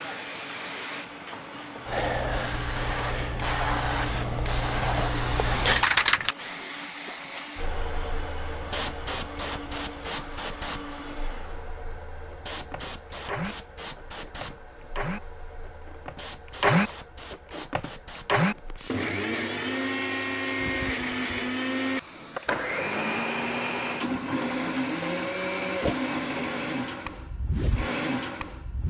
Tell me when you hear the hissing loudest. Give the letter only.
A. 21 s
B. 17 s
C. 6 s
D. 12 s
C.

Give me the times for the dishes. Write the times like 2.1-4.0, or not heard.
not heard.